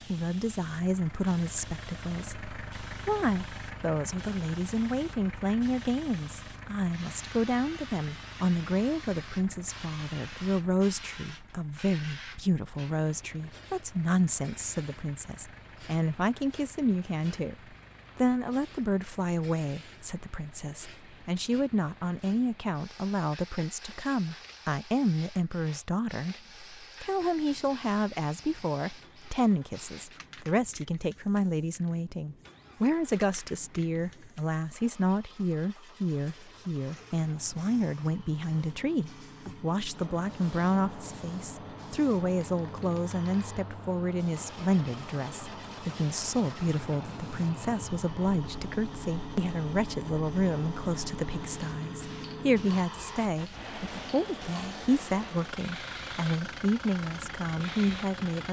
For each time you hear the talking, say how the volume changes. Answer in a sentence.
You can hear the talking from 0.1 to 58.4 s, at a steady volume.